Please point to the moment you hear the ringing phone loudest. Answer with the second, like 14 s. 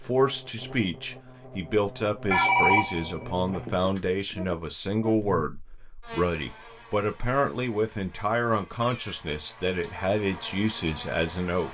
3 s.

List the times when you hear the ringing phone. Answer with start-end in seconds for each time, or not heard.
2.3-4.0, 9.5-10.1.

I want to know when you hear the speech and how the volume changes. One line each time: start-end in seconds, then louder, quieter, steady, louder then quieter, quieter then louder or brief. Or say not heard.
0.0-11.6 steady.